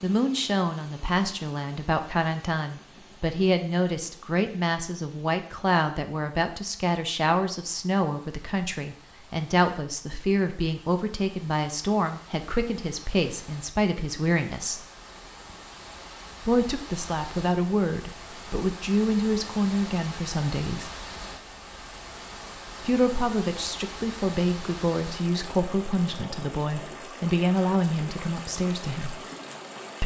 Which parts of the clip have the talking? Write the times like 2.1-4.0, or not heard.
0.0-14.8, 16.4-20.9, 22.8-29.2.